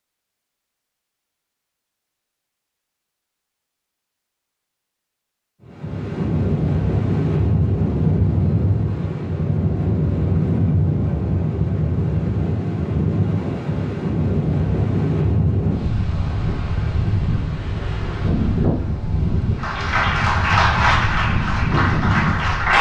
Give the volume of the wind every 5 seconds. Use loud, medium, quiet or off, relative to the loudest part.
off, loud, loud, loud, loud.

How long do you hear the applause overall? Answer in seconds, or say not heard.
3 s.